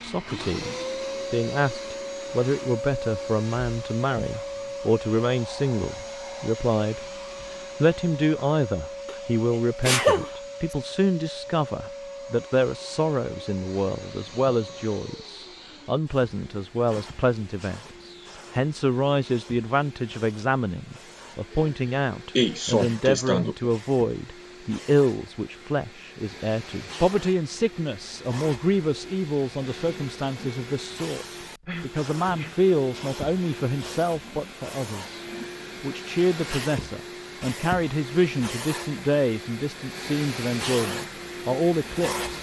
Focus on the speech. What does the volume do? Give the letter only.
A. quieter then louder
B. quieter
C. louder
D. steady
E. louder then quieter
D.